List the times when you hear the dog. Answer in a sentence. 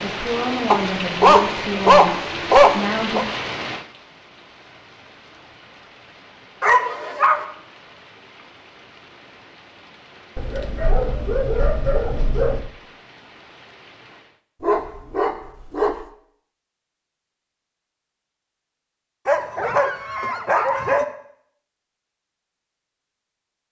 You can hear the dog from 0.7 to 3.2 s, from 6.6 to 7.5 s, from 10.3 to 12.7 s, from 14.6 to 15.9 s and from 19.2 to 21.1 s.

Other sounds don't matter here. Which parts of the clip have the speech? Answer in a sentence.
You can hear the speech from 0.0 to 3.3 s.